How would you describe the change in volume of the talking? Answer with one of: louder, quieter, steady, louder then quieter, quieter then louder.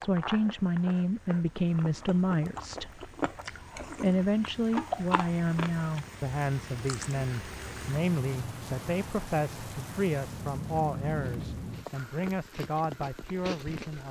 quieter.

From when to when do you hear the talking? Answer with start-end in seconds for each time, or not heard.
0.0-3.0, 4.0-14.0.